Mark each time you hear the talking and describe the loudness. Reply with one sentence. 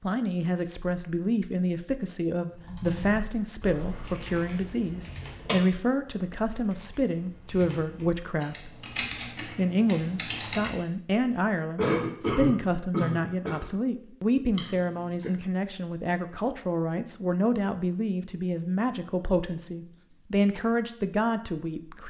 You can hear the talking from 0.0 to 22.0 s, at a steady volume.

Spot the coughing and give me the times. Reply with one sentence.
You can hear the coughing from 11.8 to 13.7 s.